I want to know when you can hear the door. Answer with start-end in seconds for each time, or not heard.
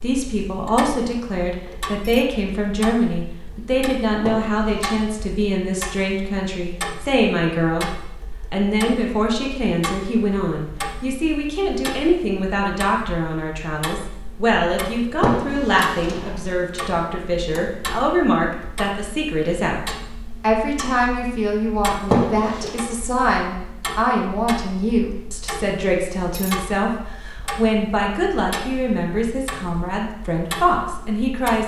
4.2-4.9, 15.2-16.4, 22.1-22.8.